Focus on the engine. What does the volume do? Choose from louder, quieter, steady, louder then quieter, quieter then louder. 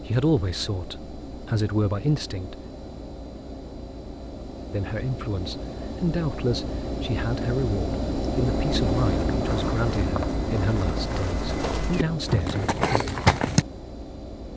louder then quieter.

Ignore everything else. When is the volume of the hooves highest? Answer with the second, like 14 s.
13 s.